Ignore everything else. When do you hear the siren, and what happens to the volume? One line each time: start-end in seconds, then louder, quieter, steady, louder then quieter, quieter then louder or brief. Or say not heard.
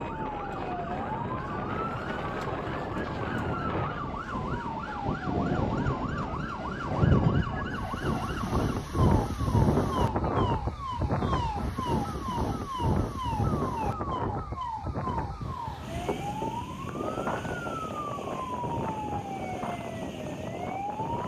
0.0-21.2 steady.